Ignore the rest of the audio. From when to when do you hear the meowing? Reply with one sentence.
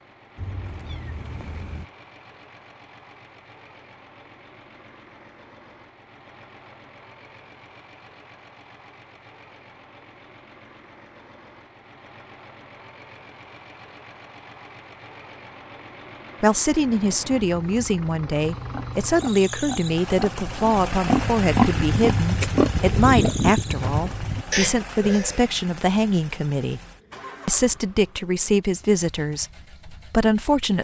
The meowing can be heard from 0.3 to 1.9 s.